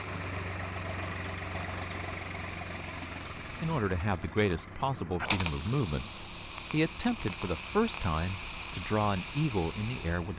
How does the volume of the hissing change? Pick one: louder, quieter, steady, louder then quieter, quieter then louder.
louder.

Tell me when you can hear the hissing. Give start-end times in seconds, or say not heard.
0.0-10.3.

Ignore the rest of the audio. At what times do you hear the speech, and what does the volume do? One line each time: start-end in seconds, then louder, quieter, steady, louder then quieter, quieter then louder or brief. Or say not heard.
3.5-10.3 steady.